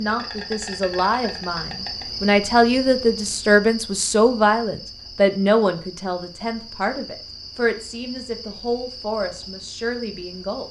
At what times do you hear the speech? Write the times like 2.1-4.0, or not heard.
0.0-10.6.